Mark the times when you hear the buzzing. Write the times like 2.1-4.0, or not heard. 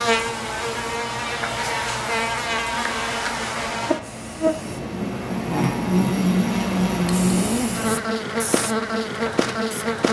0.0-10.0.